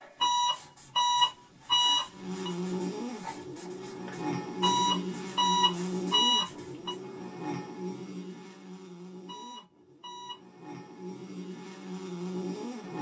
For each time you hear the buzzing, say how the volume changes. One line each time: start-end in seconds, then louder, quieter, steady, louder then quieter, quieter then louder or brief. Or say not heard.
2.0-12.9 quieter then louder.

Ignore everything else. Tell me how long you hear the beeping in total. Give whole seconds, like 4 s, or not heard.
6 s.